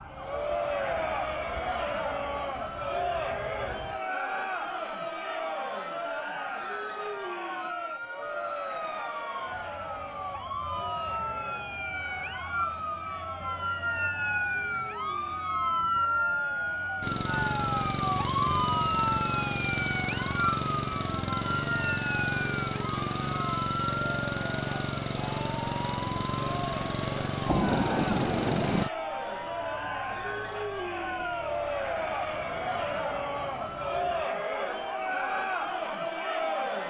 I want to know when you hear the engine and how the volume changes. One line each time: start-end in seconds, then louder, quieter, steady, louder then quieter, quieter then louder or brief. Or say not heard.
17.0-28.9 steady.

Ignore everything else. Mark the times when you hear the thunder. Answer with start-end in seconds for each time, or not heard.
27.4-28.9.